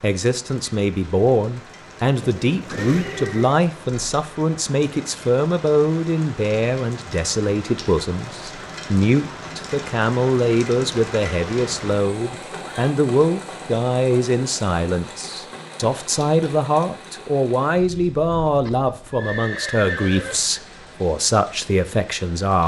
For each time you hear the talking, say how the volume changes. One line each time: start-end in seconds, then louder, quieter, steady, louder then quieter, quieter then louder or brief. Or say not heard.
0.0-22.6 steady.